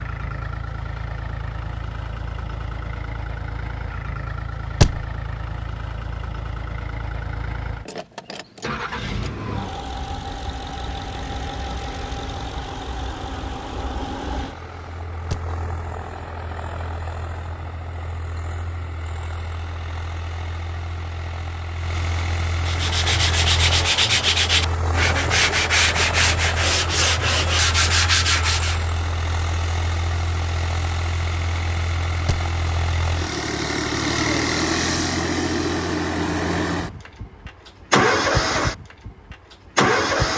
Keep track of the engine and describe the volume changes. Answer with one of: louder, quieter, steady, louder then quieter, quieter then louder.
louder.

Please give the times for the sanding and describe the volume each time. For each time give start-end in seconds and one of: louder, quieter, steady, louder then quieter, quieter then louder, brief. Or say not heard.
22.6-28.9 steady.